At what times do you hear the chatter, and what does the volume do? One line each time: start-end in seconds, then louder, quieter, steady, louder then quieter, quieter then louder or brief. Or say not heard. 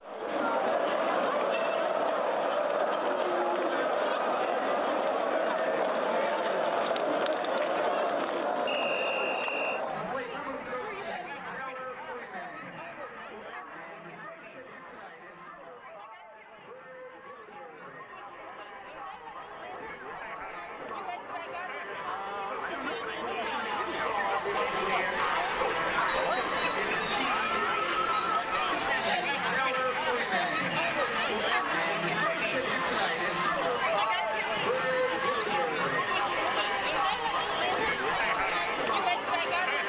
0.0-39.8 quieter then louder.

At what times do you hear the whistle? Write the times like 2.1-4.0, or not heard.
8.7-9.8, 26.1-26.9.